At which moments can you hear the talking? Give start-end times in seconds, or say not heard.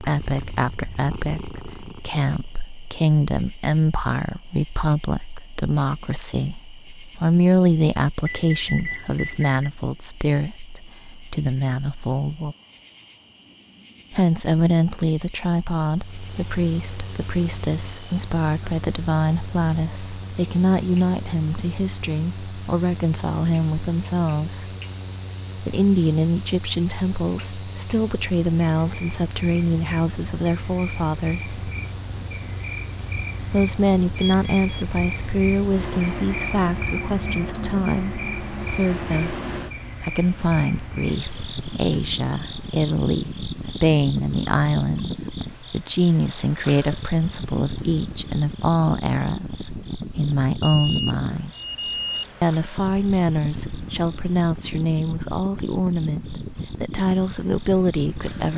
0.0-12.6, 14.1-24.7, 25.6-31.7, 33.4-39.4, 40.0-51.5, 52.4-58.5.